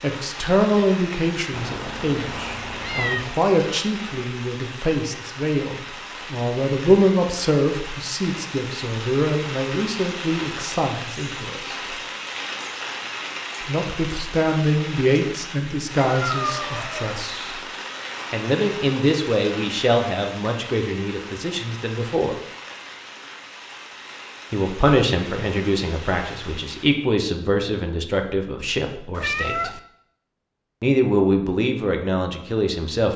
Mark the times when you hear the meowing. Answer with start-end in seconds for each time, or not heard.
1.5-3.2, 16.0-17.1, 29.1-29.8.